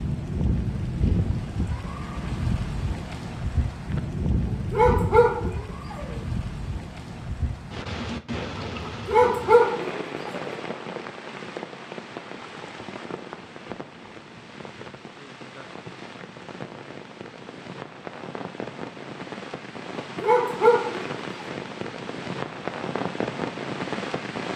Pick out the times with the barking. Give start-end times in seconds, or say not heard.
4.5-6.2, 9.1-10.5, 20.2-21.4.